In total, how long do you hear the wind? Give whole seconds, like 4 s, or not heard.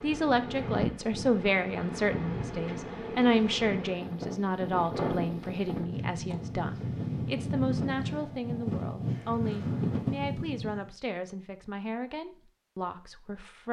11 s.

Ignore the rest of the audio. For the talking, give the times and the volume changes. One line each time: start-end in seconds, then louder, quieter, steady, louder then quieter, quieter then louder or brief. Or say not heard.
0.0-13.6 quieter.